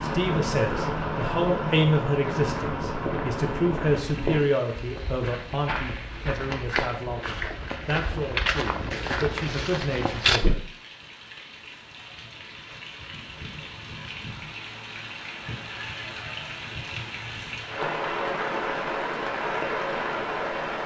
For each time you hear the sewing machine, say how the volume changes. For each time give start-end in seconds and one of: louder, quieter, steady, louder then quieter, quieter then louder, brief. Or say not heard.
not heard.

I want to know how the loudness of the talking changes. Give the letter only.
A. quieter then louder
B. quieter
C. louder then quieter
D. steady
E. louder
B.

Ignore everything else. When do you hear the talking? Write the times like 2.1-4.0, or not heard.
0.0-10.6.